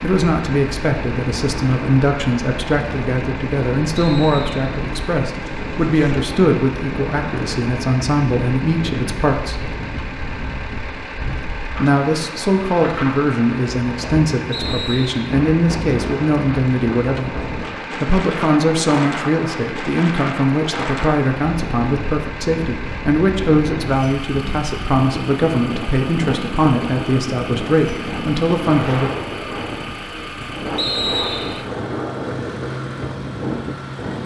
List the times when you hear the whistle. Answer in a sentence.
You can hear the whistle from 4.0 to 4.8 s, from 14.5 to 15.2 s and from 30.8 to 31.6 s.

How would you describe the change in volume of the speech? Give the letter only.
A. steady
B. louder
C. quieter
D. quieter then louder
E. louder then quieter
A.